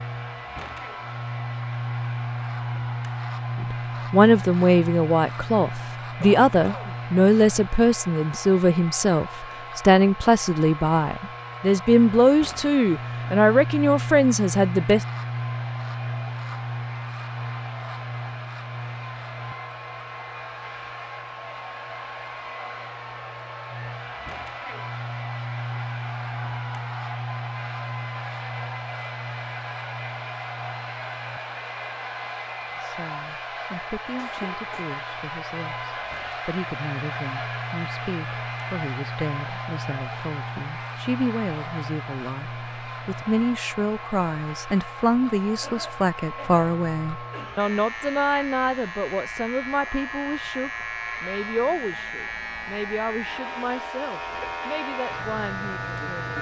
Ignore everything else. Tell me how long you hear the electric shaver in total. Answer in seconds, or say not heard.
56 s.